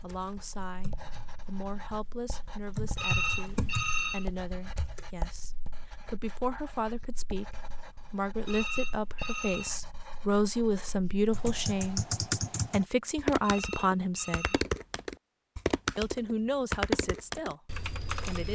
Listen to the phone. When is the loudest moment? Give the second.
3 s.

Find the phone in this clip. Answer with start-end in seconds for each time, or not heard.
3.0-4.3, 8.4-9.8, 13.4-14.7.